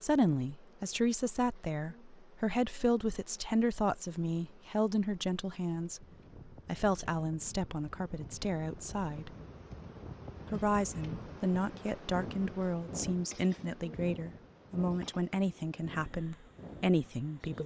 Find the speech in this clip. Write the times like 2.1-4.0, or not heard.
0.0-9.3, 10.4-17.6.